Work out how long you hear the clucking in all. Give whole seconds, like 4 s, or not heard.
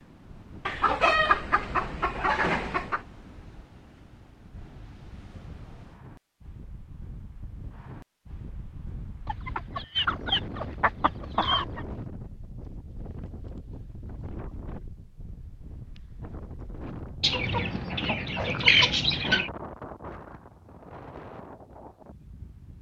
7 s.